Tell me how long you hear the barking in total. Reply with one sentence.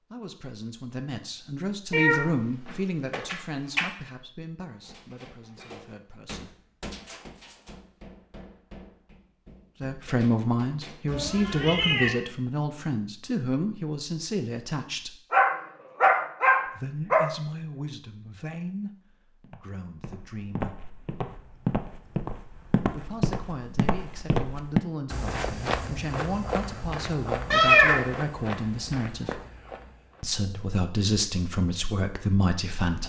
You can hear the barking for 2 seconds altogether.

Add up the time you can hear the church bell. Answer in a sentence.
The church bell can't be heard in this clip.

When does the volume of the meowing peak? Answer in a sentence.
The loudest moment of the meowing is at 28 seconds.